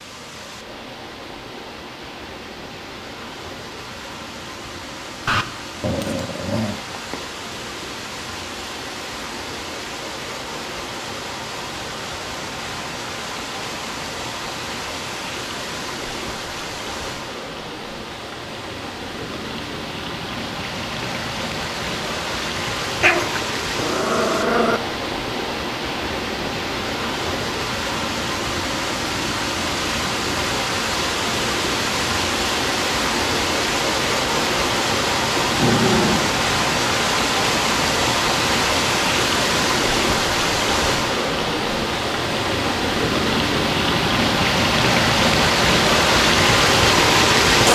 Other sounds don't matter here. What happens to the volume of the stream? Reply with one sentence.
The loudness of the stream goes up.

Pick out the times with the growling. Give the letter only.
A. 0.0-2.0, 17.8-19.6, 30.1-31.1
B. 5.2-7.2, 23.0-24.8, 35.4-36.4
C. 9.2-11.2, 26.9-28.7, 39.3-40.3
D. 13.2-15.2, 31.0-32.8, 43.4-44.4
B.